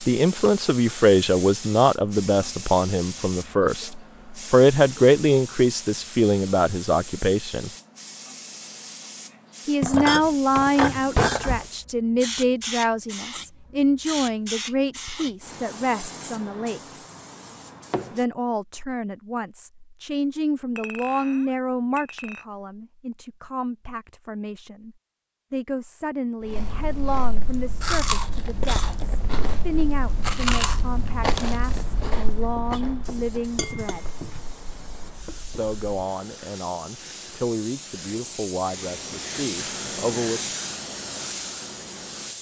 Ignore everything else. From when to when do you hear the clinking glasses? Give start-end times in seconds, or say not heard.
9.8-11.7, 20.8-22.4, 33.5-34.4.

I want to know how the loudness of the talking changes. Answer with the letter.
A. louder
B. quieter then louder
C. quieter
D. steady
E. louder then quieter
C.